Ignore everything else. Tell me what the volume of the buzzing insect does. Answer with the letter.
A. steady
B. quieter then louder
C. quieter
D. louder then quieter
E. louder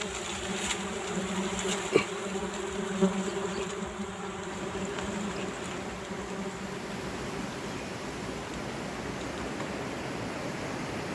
C.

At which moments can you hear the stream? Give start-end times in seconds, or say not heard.
4.5-11.0.